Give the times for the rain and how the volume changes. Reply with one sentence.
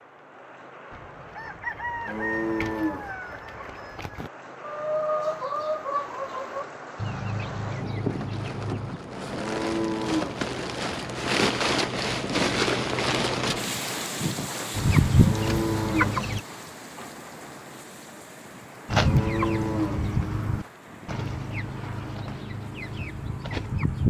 The rain can be heard from 0.0 to 24.0 s, getting louder then quieter.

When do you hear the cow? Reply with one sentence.
You can hear the cow from 2.0 to 3.1 s, from 9.3 to 10.4 s, from 15.2 to 16.2 s and from 19.0 to 20.1 s.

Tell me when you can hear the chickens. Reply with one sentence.
The chickens can be heard from 0.9 to 9.0 s, from 14.8 to 16.4 s and from 18.9 to 24.0 s.